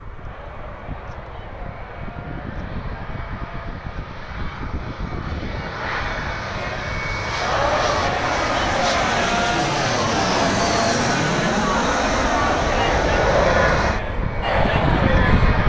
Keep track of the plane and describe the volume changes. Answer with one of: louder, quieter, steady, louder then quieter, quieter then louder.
louder.